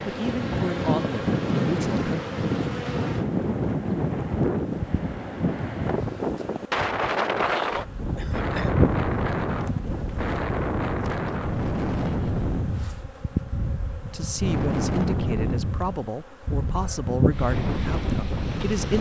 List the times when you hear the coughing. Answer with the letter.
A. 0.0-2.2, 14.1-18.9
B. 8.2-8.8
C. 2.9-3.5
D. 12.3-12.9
B.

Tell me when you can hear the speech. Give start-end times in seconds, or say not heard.
0.0-2.2, 14.1-18.9.